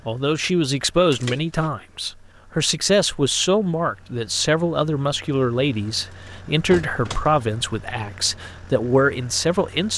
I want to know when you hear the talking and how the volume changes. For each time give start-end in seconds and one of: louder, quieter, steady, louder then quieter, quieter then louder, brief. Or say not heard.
0.1-9.9 steady.